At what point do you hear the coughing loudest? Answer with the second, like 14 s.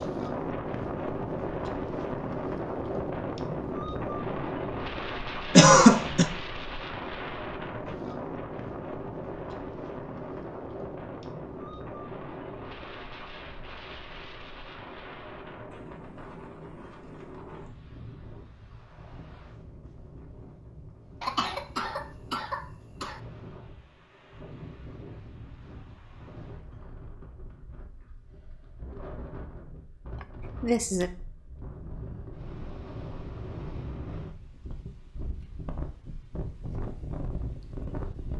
6 s.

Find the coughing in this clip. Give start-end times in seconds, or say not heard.
5.5-6.2, 21.2-23.2, 30.2-31.1.